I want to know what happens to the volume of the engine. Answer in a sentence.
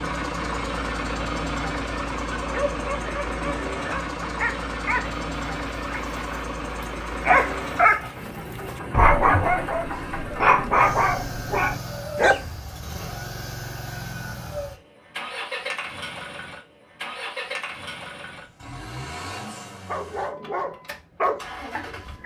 The loudness of the engine goes down.